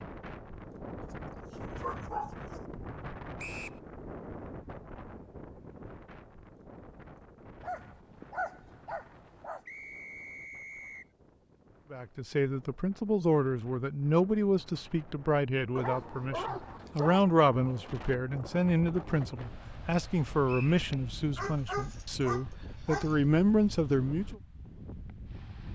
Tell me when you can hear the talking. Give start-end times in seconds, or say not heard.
11.9-24.4.